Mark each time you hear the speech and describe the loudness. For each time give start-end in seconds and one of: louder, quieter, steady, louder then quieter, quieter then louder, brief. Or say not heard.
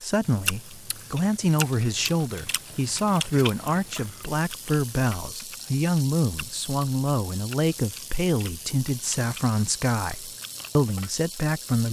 0.0-11.8 steady.